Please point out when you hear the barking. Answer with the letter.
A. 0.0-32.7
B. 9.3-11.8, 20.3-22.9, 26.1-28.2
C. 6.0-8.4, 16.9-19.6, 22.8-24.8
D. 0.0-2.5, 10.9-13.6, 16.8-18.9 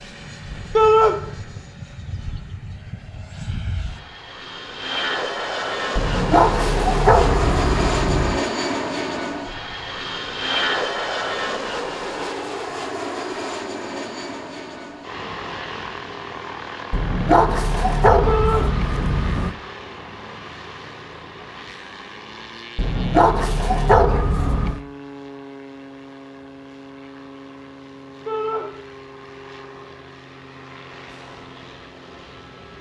C.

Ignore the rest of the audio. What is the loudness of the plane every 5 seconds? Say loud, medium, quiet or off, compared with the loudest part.
medium, loud, loud, medium, quiet, quiet, quiet.